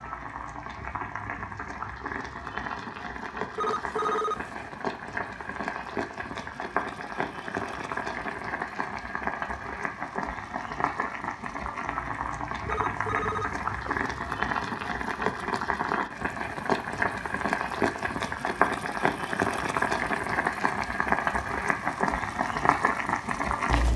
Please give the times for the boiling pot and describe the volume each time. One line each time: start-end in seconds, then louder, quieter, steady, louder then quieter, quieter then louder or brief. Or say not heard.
0.0-23.9 louder.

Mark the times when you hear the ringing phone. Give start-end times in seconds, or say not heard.
3.5-4.7, 12.7-14.0.